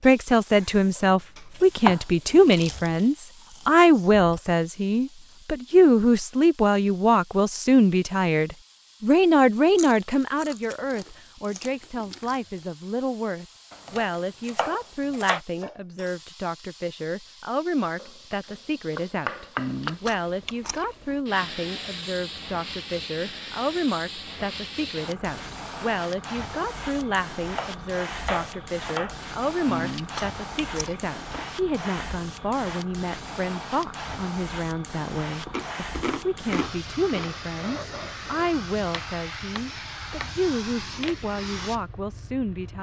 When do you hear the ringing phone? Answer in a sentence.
You can't hear the ringing phone here.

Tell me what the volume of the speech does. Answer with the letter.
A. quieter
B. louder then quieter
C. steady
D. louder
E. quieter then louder
A.